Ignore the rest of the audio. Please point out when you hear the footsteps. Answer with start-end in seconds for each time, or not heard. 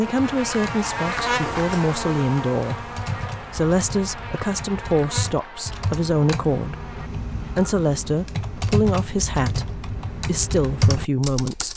not heard.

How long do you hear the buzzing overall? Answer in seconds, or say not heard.
7 s.